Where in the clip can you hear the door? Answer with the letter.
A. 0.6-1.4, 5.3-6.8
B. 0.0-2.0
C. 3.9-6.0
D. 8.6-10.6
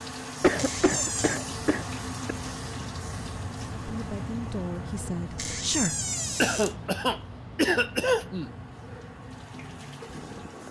A.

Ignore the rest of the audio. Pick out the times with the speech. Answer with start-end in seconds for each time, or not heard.
3.9-6.0.